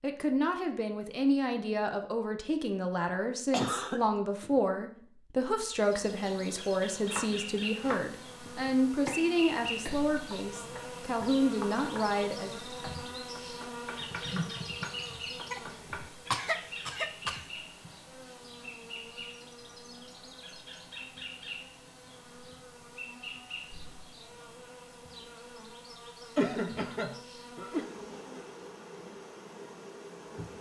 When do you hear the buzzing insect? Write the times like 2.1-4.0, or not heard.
5.5-30.5.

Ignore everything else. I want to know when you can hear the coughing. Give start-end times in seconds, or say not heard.
3.5-4.6, 15.5-17.4, 26.4-27.9.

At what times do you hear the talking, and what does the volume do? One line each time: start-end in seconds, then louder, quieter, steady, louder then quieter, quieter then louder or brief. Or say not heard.
0.0-12.6 steady.